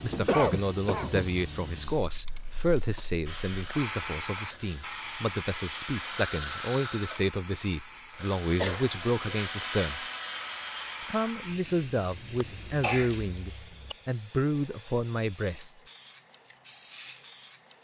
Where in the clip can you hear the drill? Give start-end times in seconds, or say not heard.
3.2-11.3.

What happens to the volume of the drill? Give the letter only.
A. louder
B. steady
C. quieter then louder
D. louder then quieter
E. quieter
A.